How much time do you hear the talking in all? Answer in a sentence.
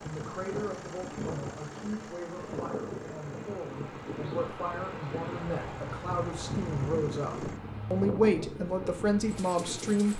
You can hear the talking for 10 seconds altogether.